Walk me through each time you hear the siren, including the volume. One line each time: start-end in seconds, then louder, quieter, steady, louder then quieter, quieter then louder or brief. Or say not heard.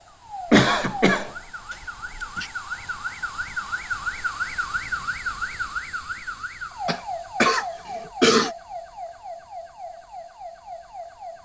0.0-11.4 louder then quieter.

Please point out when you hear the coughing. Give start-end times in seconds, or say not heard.
0.5-2.5, 6.8-8.5.